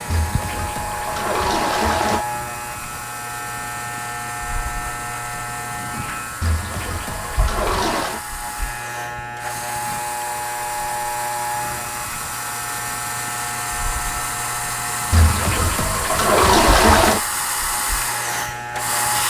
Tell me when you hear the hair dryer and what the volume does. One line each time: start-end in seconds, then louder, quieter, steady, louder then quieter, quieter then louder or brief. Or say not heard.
0.0-19.2 louder.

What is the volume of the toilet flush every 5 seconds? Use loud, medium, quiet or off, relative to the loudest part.
medium, medium, off, loud.